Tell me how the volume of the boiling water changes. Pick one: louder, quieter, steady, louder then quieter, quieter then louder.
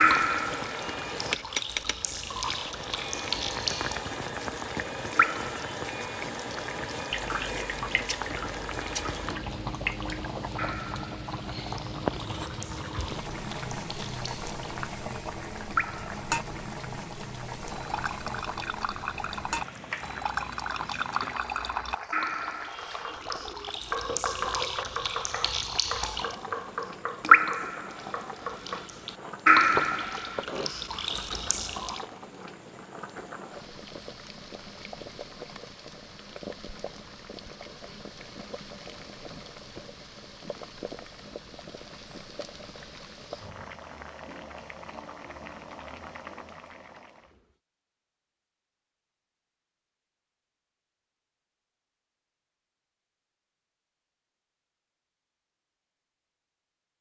quieter.